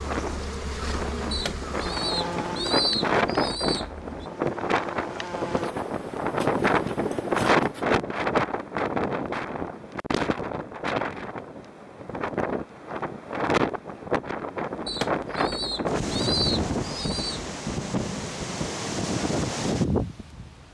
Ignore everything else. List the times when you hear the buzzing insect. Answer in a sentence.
The buzzing insect can be heard from 0.0 to 7.8 s.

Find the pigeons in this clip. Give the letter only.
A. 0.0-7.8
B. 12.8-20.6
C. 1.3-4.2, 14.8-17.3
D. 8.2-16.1
C.